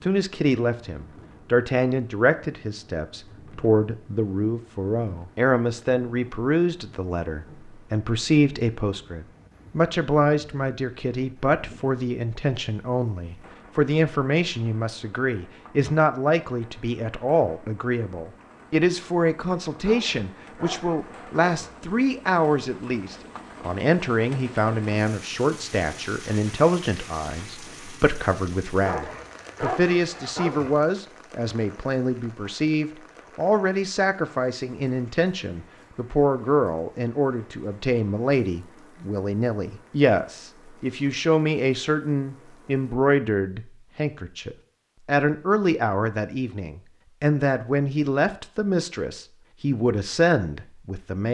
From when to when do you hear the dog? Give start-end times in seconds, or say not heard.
19.8-21.8, 28.9-30.8.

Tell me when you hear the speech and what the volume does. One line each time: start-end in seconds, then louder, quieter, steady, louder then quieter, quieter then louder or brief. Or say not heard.
0.0-51.3 steady.